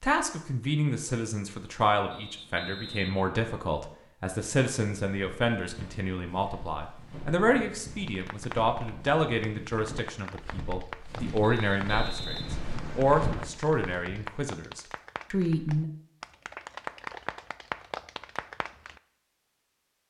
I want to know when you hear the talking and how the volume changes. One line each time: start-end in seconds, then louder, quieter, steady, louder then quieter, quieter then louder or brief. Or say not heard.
0.0-15.8 steady.